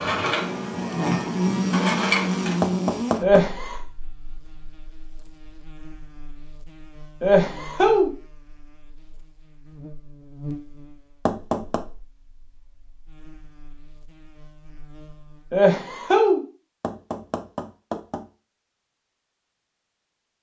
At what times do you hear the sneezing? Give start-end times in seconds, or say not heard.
3.2-3.8, 7.2-8.1, 15.5-16.4.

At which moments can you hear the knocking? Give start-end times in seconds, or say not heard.
2.6-3.5, 11.2-11.8, 16.8-18.2.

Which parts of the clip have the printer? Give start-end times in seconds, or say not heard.
0.0-2.5.